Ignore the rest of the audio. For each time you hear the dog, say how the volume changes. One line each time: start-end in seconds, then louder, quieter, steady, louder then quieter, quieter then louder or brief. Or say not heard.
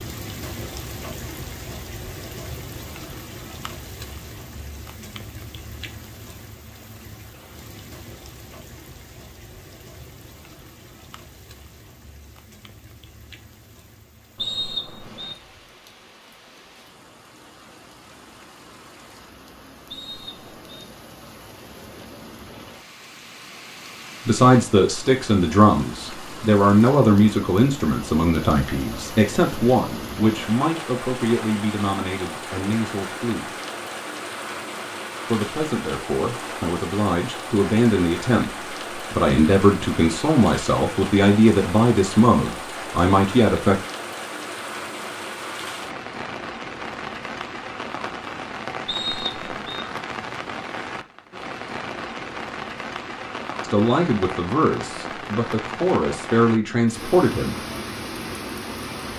not heard.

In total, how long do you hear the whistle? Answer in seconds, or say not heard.
3 s.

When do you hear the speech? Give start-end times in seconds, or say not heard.
24.2-33.5, 35.2-38.5, 39.1-43.8, 53.6-57.6.